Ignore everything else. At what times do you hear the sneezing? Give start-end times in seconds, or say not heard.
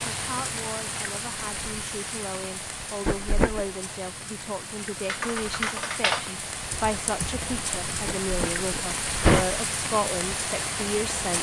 3.0-3.6, 8.1-9.6.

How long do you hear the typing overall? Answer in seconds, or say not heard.
3 s.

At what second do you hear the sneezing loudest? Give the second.
9 s.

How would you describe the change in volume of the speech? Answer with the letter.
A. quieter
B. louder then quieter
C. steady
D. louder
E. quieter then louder
D.